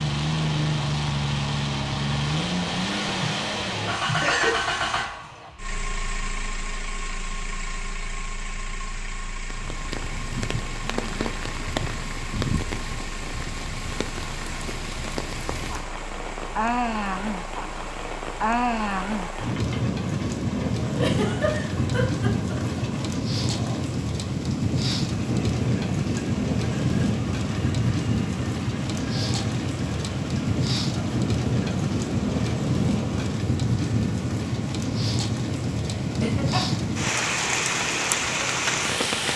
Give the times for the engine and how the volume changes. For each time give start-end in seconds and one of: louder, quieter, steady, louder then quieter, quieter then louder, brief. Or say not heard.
0.0-39.3 quieter.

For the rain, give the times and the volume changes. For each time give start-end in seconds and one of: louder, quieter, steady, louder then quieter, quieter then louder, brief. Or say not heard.
9.3-39.3 louder.